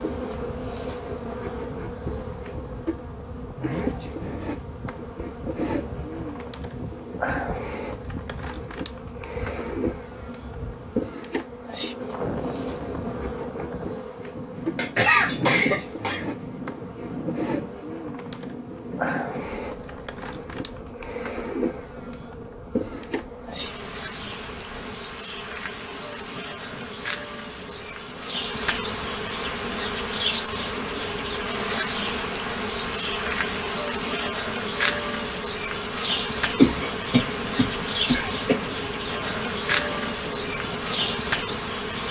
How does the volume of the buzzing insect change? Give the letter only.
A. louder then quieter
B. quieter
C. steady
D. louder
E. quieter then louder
D.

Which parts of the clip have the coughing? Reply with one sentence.
The coughing can be heard from 14.8 to 16.2 s and from 36.5 to 38.5 s.